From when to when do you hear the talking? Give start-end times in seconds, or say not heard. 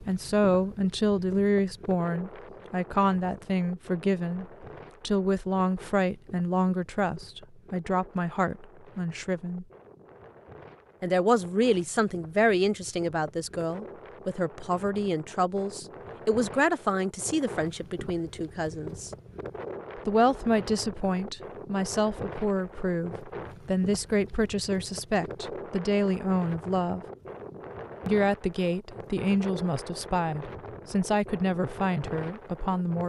0.0-9.7, 11.0-19.1, 19.9-27.1, 28.1-33.0.